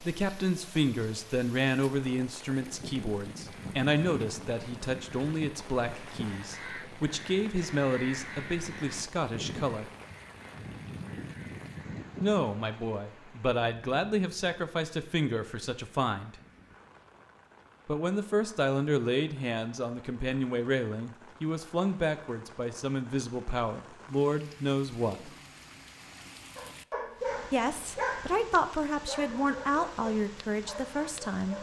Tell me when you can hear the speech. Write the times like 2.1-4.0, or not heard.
0.0-9.9, 12.2-16.4, 17.9-25.4, 27.5-31.5.